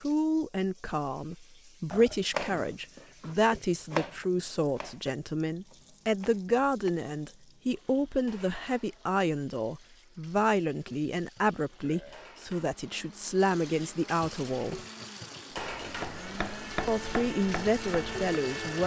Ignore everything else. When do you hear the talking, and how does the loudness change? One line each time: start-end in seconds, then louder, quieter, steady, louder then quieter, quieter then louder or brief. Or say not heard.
0.0-14.8 steady
16.9-18.8 brief.